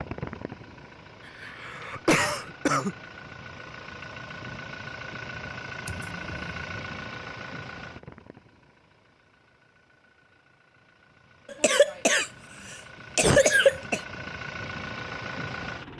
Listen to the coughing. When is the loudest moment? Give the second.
14 s.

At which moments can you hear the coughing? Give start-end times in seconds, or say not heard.
1.2-3.0, 5.8-6.7, 11.5-14.0.